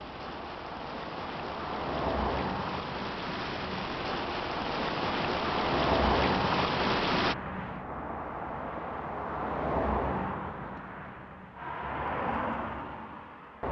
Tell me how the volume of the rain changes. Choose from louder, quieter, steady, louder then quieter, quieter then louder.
louder.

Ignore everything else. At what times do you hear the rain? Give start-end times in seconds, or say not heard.
0.0-7.3.